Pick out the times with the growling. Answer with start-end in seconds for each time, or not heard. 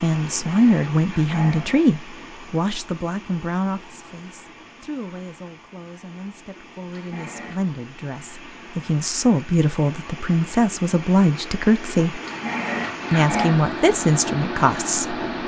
0.5-1.8, 6.9-7.6, 12.2-13.6.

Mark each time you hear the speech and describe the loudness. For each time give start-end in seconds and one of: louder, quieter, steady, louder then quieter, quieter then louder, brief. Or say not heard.
0.0-12.2 quieter then louder
13.1-15.2 brief.